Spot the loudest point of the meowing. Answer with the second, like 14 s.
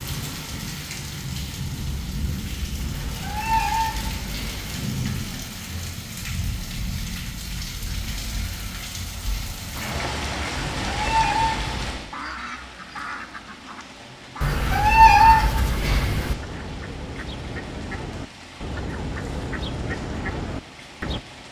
15 s.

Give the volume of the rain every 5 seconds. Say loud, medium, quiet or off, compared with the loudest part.
loud, loud, loud, medium, medium.